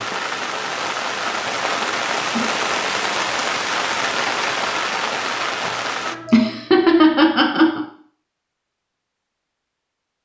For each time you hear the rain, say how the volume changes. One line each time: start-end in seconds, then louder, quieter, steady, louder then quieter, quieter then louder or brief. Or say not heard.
0.0-6.2 steady.